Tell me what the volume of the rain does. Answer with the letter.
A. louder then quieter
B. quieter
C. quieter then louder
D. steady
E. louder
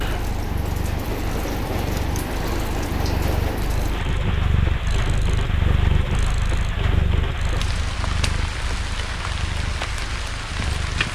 D.